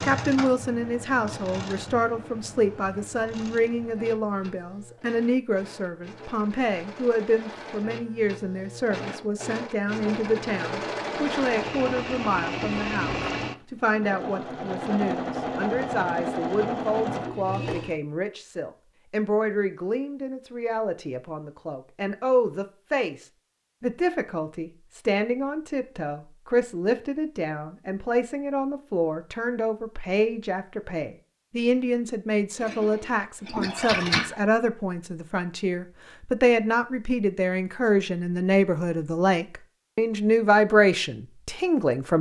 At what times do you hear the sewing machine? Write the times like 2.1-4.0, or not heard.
0.0-17.9, 32.6-34.4.